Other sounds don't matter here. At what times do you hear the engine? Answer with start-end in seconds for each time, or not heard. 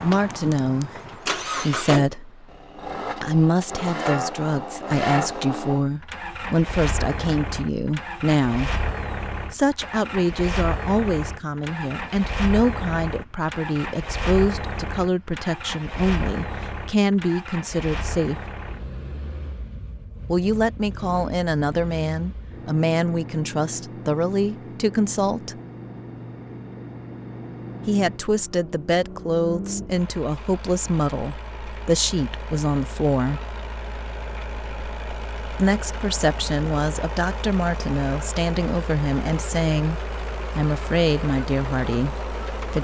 0.0-42.7.